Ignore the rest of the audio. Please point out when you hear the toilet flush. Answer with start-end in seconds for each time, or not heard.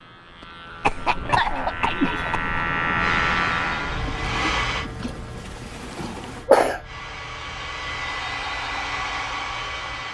4.0-6.5.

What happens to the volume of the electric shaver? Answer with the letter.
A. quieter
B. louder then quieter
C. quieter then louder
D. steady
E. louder
B.